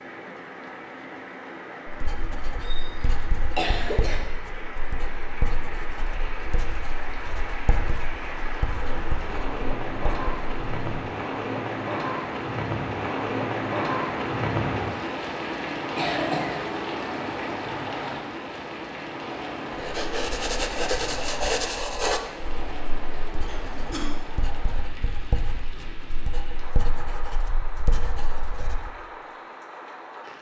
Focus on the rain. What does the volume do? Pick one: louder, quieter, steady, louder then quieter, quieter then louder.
louder then quieter.